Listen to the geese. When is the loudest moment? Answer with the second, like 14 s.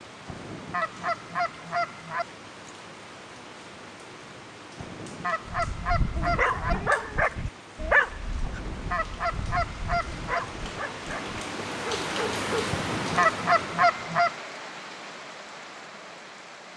13 s.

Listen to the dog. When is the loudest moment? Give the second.
8 s.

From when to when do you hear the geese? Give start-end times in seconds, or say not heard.
0.2-2.2, 4.8-6.8, 8.4-10.4, 12.7-14.3.